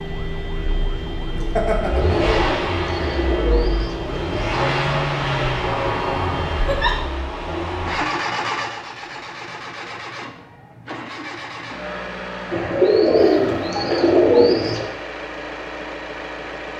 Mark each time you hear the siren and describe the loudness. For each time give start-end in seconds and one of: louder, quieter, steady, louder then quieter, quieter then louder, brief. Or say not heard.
0.0-7.2 steady.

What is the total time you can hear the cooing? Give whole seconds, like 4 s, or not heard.
5 s.